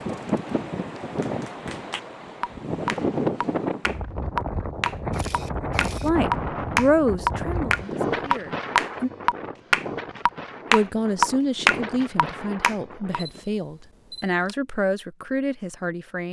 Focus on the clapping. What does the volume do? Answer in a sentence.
The volume of the clapping goes up.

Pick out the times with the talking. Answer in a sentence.
You can hear the talking from 6.0 to 9.1 s and from 10.7 to 16.2 s.